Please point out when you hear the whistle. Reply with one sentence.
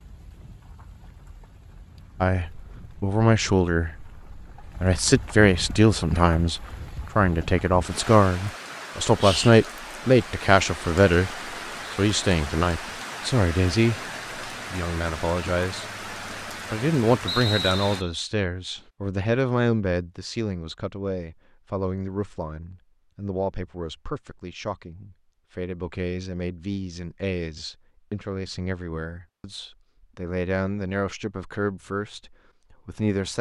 The whistle can be heard from 17.2 to 18.1 s.